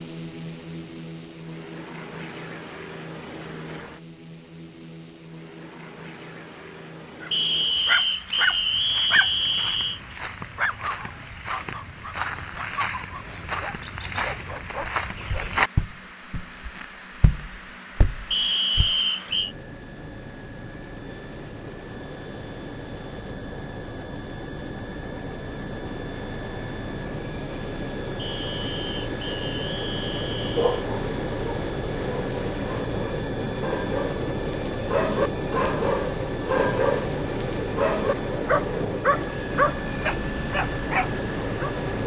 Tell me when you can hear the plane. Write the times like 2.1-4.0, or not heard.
0.0-42.0.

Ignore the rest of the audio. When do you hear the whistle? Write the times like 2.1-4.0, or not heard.
7.3-10.0, 18.3-19.6, 28.1-30.8.